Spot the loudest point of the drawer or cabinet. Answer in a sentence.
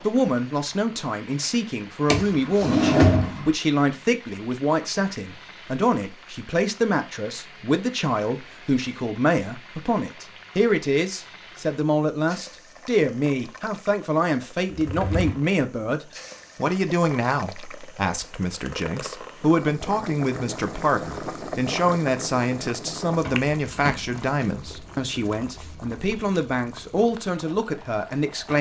The volume of the drawer or cabinet peaks at 3 seconds.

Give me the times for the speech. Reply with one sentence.
You can hear the speech from 0.0 to 28.5 s.